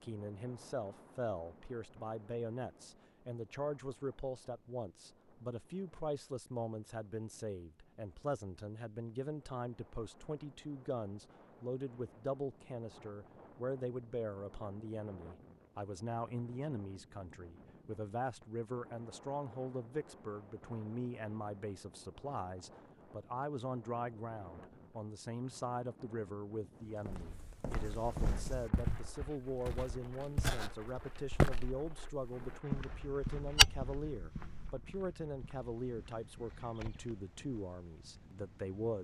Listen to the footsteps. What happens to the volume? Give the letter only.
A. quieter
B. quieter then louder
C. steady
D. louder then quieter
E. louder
D.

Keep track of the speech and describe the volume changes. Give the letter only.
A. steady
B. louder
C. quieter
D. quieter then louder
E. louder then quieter
A.